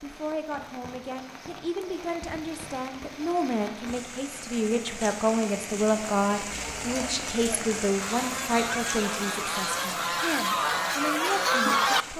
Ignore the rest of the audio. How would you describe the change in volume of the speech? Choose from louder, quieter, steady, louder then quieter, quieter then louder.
louder then quieter.